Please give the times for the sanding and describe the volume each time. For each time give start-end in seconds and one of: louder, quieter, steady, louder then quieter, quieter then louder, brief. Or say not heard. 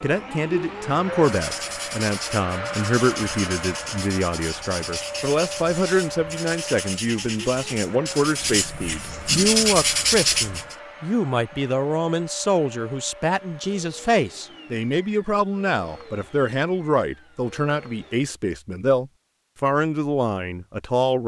1.2-10.8 louder.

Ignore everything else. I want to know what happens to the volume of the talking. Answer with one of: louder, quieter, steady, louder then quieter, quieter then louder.
steady.